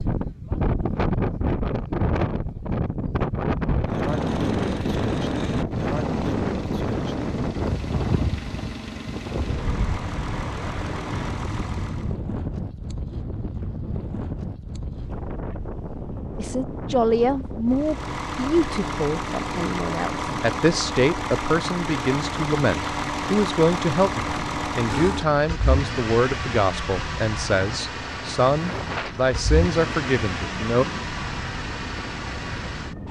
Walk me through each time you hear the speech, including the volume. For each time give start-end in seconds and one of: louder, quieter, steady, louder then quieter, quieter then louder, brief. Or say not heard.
16.4-30.9 steady.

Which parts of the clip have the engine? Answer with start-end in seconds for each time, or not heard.
3.9-12.2, 17.7-33.0.